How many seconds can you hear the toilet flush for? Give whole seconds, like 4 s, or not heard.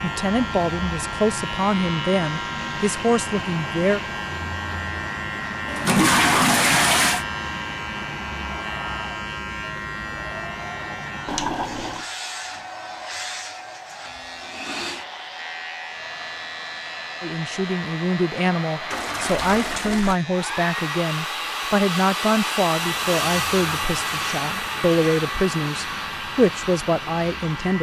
4 s.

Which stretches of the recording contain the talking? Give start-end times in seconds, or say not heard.
0.0-4.0, 17.2-27.7.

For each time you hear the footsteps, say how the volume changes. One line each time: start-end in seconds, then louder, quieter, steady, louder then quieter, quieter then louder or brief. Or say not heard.
not heard.